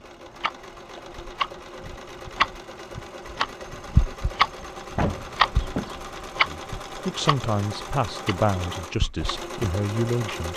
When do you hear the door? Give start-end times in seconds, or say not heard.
5.0-6.0.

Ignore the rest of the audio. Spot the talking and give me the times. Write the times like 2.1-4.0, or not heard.
6.5-10.5.